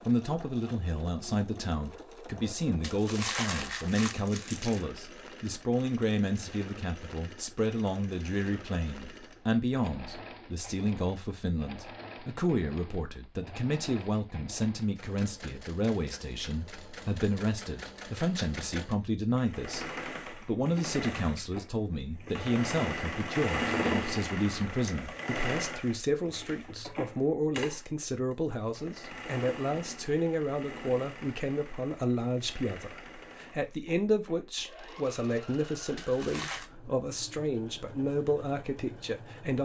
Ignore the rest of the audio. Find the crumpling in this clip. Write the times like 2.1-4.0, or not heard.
2.8-4.8, 36.0-36.7.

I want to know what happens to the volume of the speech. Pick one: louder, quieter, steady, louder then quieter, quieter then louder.
steady.